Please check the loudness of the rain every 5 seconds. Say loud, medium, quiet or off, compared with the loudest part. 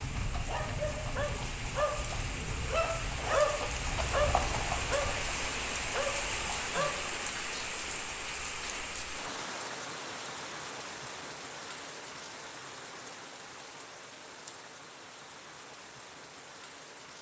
loud, loud, medium, quiet.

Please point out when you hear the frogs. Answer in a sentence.
The frogs can't be heard in this clip.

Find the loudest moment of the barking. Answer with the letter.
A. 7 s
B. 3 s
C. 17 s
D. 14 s
B.